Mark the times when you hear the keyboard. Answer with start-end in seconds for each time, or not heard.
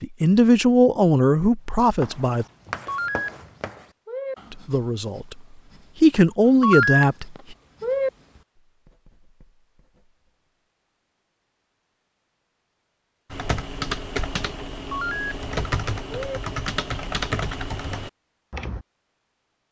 13.3-18.9.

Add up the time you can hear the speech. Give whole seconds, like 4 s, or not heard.
5 s.